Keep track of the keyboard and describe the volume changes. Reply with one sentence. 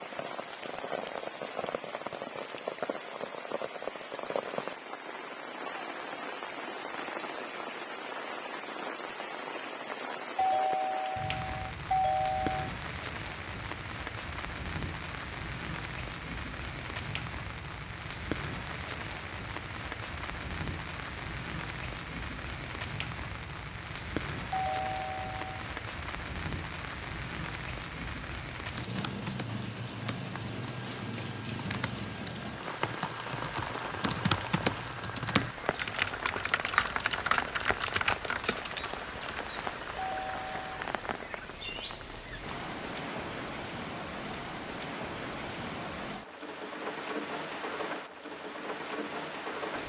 The loudness of the keyboard goes up.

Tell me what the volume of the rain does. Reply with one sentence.
The loudness of the rain stays about the same.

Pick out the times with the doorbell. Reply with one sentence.
The doorbell can be heard from 10.3 to 12.7 s, from 24.5 to 25.6 s and from 40.0 to 40.6 s.